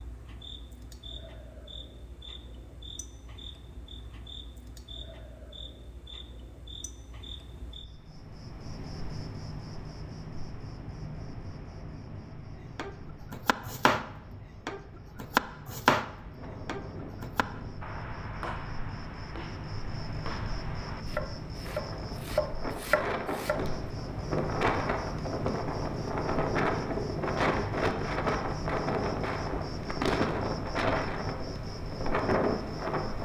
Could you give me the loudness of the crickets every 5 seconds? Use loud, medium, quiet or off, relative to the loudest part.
medium, medium, medium, medium, loud, loud, loud.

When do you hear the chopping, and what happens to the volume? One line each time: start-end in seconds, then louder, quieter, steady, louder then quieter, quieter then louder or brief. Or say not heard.
12.8-14.1 brief
14.7-23.8 quieter then louder.